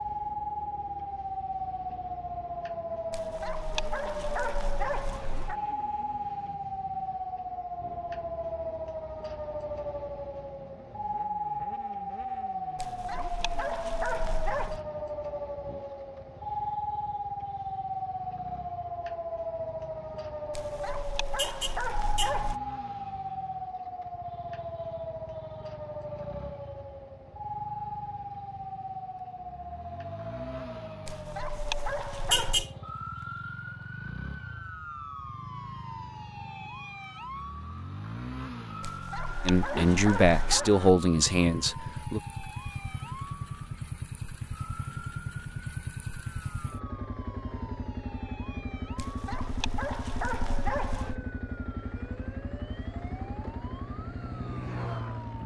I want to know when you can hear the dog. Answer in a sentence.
You can hear the dog from 3.1 to 5.5 s, from 12.8 to 14.8 s, from 20.5 to 22.6 s, from 31.1 to 32.6 s, from 38.8 to 40.8 s and from 49.0 to 51.2 s.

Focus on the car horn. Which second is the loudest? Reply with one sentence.
The volume of the car horn peaks at 32 seconds.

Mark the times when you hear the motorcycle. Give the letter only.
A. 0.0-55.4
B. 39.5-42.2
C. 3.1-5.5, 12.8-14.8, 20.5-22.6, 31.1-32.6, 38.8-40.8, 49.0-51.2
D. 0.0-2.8
A.